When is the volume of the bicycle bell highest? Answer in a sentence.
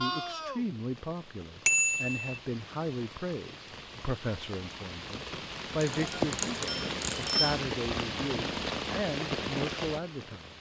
The loudest moment of the bicycle bell is at 2 seconds.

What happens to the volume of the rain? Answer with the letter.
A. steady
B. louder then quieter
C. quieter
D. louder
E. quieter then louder
D.